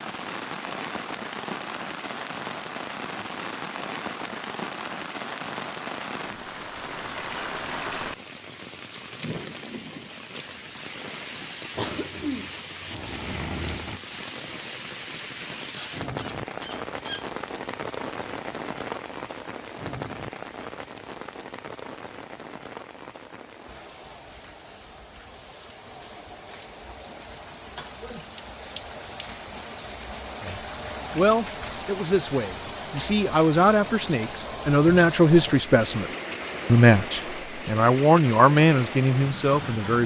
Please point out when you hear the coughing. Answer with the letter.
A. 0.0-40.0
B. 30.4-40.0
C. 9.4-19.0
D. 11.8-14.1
D.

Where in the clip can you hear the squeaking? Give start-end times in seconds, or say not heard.
15.8-17.2.